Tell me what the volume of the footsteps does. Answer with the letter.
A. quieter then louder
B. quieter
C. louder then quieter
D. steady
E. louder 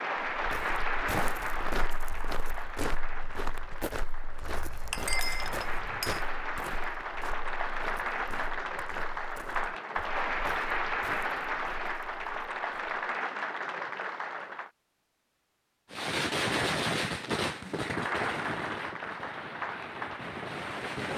B.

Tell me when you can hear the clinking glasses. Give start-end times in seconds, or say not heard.
4.4-6.2.